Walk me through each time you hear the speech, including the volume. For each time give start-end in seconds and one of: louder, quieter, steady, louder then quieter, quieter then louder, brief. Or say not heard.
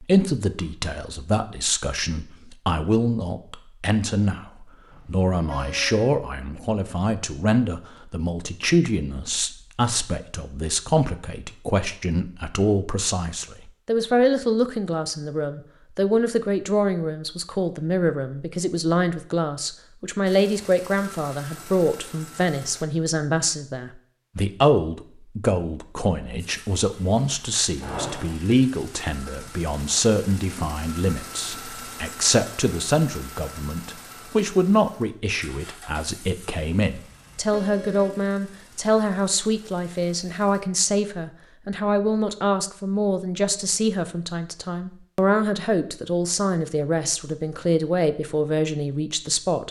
0.0-49.6 steady.